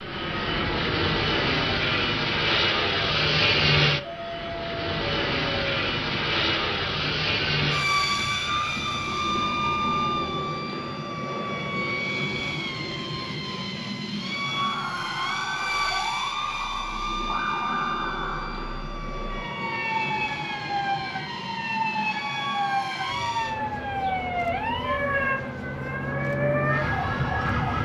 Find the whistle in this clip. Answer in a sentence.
The whistle can't be heard in this clip.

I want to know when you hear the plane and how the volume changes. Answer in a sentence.
You can hear the plane from 0.0 to 27.8 s, getting quieter.